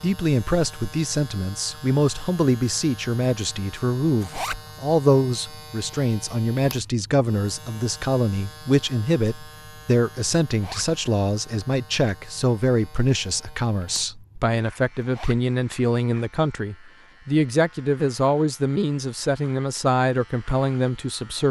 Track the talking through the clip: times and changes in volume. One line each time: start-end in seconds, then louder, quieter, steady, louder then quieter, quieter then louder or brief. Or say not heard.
0.0-21.4 steady.